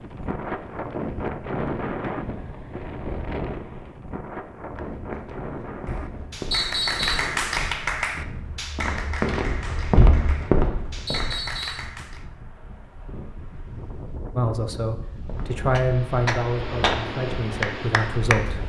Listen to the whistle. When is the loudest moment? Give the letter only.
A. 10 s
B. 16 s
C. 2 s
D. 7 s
D.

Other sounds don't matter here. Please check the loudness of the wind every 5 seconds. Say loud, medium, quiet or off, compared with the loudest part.
loud, medium, medium, loud.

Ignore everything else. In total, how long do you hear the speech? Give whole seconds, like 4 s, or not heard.
4 s.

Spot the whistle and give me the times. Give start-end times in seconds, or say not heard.
6.5-7.3, 11.1-11.9.